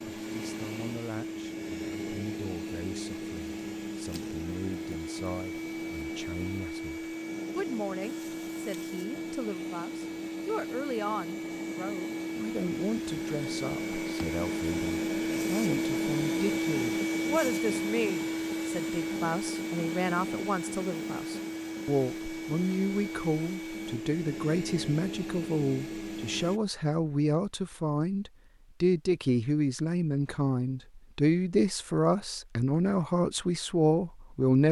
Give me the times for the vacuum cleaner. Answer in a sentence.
The vacuum cleaner can be heard from 0.0 to 26.6 s.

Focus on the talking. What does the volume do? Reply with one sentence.
The loudness of the talking goes up.